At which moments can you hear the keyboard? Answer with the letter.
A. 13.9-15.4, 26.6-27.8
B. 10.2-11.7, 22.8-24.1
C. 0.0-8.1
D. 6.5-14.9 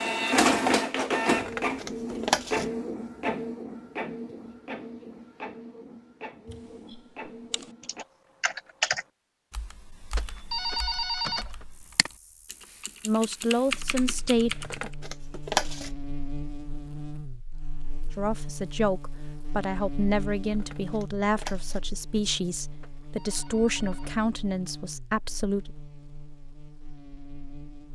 D.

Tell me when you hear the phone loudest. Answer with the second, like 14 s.
11 s.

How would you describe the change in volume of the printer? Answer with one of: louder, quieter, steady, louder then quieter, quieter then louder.
quieter.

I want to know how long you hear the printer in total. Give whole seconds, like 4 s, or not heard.
8 s.